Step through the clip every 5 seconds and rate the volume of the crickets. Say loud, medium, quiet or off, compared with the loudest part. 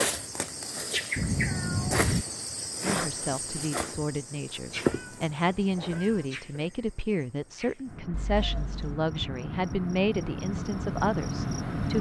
loud, medium, loud.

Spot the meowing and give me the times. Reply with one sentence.
You can hear the meowing from 1.1 to 2.2 s, from 4.7 to 6.3 s and from 8.1 to 9.1 s.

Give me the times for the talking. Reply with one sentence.
You can hear the talking from 2.8 to 11.9 s.